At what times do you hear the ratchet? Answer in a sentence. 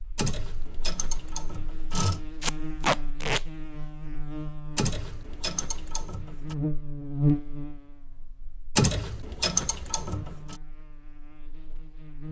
The ratchet can be heard from 0.1 to 2.2 s, from 4.8 to 6.5 s and from 8.8 to 10.6 s.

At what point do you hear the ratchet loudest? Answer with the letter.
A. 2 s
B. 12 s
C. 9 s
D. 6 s
C.